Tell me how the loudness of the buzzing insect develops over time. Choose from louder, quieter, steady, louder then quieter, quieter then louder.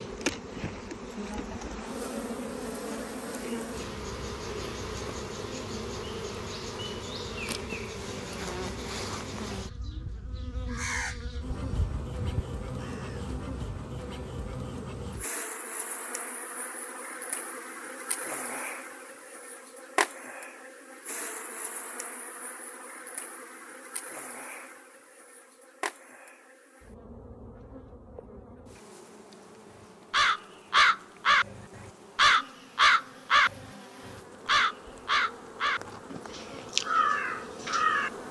quieter.